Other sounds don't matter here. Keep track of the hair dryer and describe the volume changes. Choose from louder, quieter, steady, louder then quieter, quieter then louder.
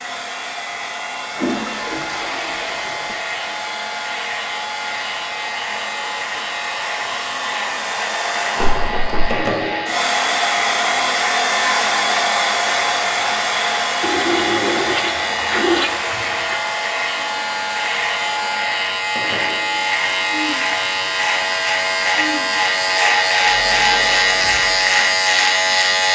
louder then quieter.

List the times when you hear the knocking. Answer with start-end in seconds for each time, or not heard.
8.6-9.4.